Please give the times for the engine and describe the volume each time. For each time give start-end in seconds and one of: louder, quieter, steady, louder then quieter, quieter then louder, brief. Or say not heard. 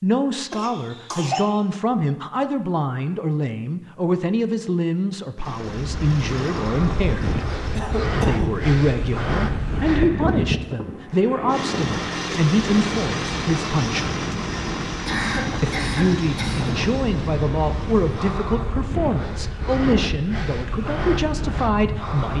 5.3-7.8 brief
11.4-18.4 quieter.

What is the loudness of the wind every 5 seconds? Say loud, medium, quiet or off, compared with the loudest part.
off, loud, loud, loud, loud.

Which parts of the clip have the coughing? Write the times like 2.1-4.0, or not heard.
0.5-1.4, 7.8-8.7, 15.1-16.8.